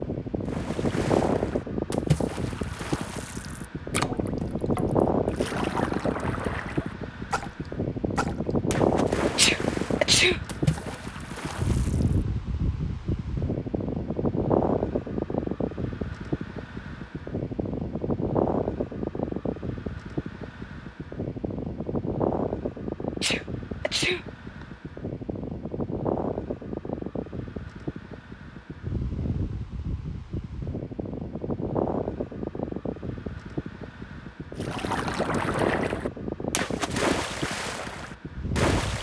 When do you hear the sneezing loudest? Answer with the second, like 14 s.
10 s.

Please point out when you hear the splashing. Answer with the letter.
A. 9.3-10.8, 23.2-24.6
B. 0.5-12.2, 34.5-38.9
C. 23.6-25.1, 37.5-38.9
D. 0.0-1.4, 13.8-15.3
B.